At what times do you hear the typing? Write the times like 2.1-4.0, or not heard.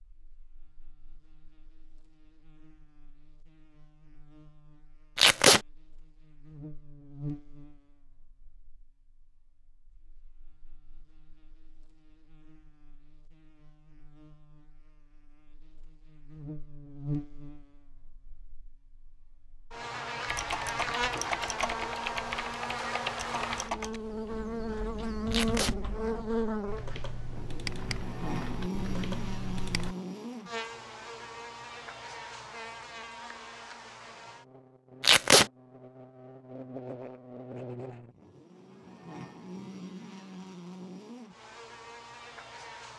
20.2-29.9.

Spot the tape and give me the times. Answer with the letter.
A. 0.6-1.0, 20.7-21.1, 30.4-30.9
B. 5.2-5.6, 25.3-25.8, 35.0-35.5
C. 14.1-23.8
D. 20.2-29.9
B.